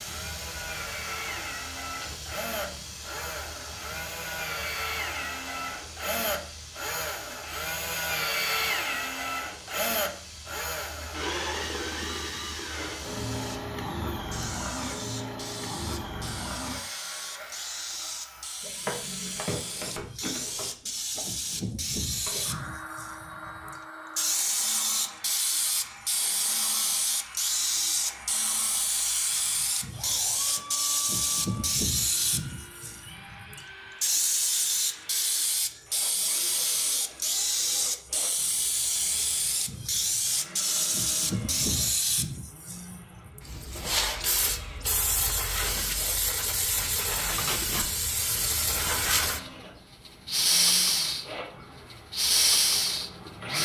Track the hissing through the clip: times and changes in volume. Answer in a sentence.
The hissing can be heard from 0.0 to 53.6 s, getting louder.